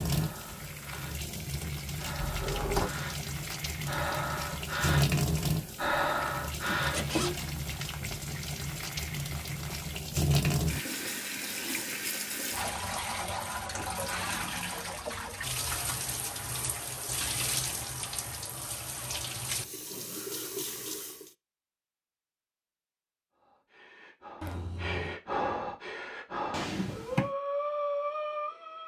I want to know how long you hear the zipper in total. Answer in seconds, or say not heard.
2 s.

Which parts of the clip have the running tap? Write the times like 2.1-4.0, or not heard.
0.0-21.3.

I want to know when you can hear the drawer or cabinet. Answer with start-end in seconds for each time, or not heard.
2.2-2.9, 26.5-27.3.